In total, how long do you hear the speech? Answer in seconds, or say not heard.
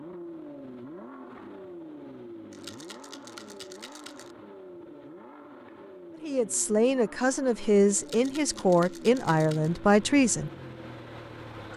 4 s.